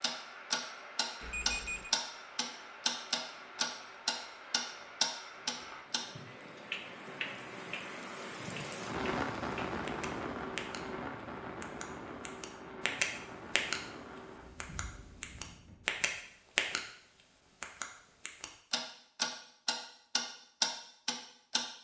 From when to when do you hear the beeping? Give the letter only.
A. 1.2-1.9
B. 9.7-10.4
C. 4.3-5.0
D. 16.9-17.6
A.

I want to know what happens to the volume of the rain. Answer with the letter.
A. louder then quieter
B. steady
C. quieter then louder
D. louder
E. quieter
A.